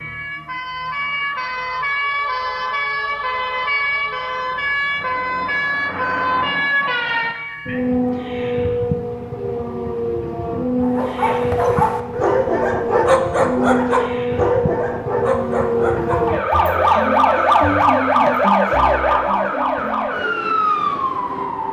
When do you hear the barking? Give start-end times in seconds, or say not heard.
10.8-16.9.